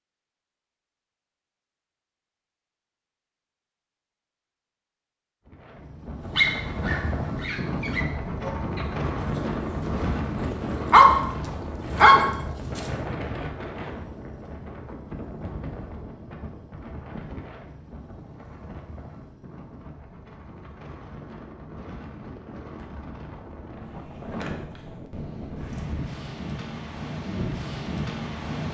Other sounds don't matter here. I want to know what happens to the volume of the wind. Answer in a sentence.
The volume of the wind goes down, then up.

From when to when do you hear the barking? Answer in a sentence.
The barking can be heard from 6.2 to 12.9 s.